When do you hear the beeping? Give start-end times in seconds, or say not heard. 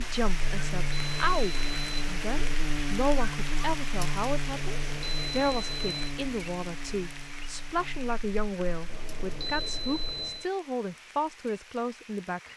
0.4-2.6, 4.5-6.2, 8.8-10.5.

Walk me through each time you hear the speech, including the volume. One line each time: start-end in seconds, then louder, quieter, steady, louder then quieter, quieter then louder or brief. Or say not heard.
0.0-12.5 steady.